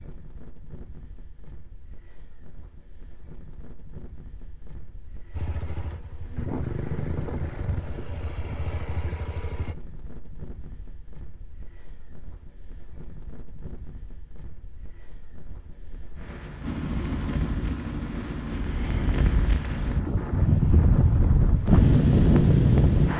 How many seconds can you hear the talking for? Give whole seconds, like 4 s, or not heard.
not heard.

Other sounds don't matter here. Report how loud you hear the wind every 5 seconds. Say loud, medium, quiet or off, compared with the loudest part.
quiet, quiet, quiet, quiet, loud.